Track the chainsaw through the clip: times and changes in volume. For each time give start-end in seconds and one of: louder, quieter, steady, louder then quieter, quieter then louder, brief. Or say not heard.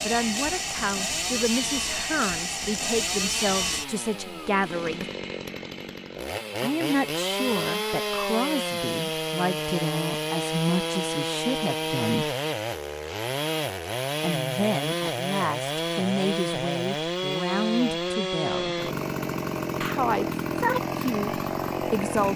0.0-22.3 steady.